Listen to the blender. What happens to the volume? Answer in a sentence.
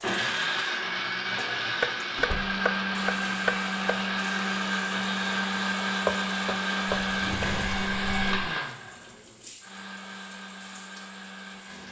The loudness of the blender goes down.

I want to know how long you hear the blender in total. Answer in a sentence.
The blender can be heard for 12 seconds in total.